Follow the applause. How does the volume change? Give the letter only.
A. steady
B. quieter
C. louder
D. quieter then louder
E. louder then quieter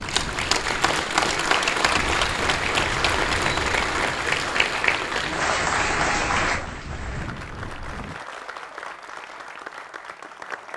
B.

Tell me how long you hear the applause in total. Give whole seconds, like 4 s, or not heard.
11 s.